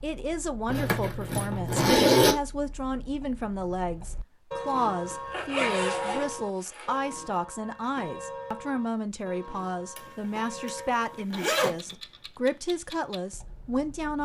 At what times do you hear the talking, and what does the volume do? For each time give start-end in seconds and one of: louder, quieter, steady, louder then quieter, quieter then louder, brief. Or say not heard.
0.0-14.1 steady.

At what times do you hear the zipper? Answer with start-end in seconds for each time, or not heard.
0.7-2.4, 5.1-7.0, 9.9-11.9.